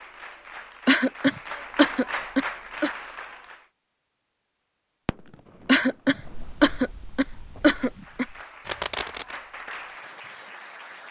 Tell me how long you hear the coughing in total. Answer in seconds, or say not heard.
5 s.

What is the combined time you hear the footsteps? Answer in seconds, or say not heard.
not heard.